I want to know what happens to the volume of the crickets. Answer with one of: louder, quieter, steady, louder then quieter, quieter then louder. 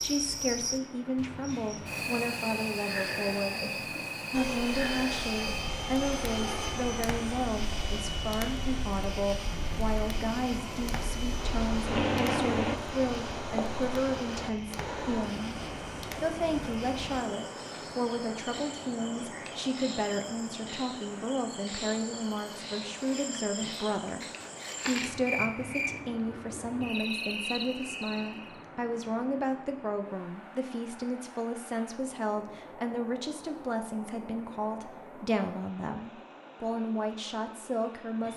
quieter then louder.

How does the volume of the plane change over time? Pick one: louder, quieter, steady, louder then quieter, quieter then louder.
quieter then louder.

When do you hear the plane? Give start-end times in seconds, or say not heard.
4.3-12.8.